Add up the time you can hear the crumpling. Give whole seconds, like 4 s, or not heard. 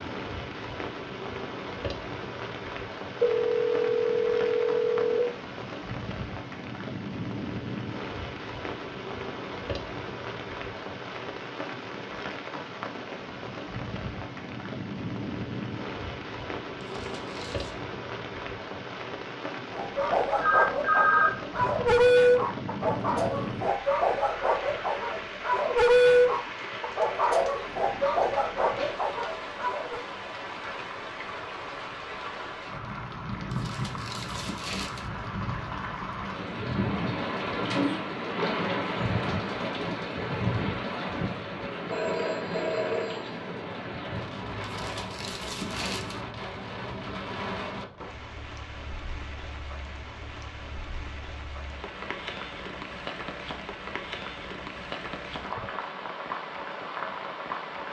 4 s.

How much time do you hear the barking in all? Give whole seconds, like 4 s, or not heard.
10 s.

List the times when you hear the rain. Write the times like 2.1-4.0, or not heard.
0.0-57.8.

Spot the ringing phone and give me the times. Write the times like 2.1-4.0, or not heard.
3.2-5.2, 20.4-21.3, 41.9-43.4.